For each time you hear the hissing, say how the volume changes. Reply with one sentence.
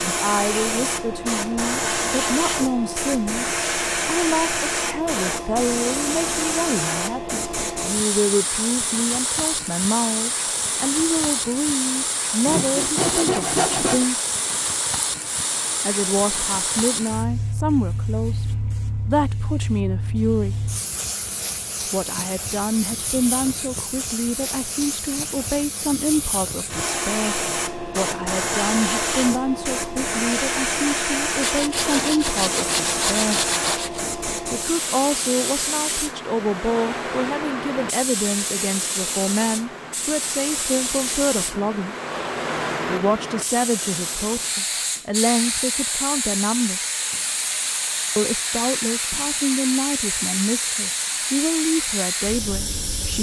You can hear the hissing from 0.0 to 53.1 s, at a steady volume.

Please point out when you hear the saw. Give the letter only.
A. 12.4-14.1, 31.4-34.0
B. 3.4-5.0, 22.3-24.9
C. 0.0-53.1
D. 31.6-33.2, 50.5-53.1
A.